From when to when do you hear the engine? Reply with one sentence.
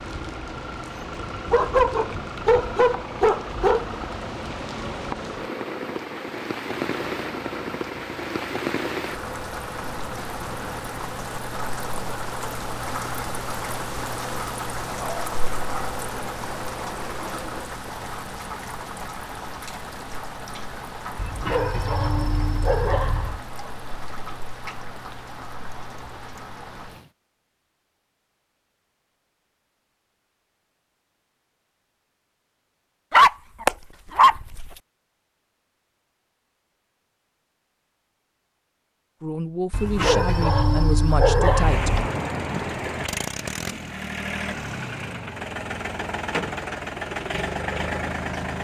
You can hear the engine from 0.0 to 17.8 s and from 41.5 to 48.5 s.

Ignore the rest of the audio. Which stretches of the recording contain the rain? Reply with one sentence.
You can hear the rain from 0.0 to 27.1 s.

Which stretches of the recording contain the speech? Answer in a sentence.
The speech can be heard from 39.2 to 42.0 s.